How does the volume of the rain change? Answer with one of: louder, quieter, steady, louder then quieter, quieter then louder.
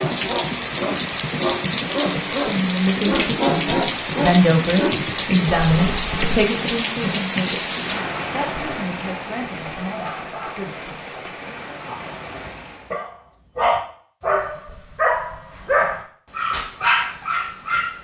quieter.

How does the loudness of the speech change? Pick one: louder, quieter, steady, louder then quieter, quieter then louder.
quieter.